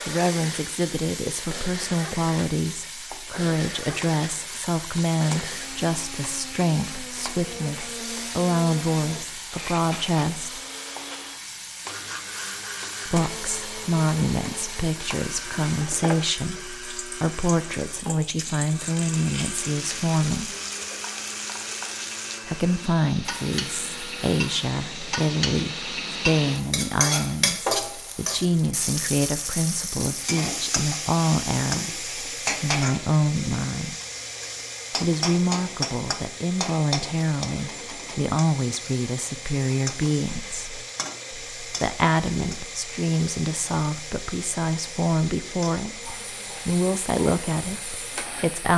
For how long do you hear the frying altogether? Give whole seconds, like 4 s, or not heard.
49 s.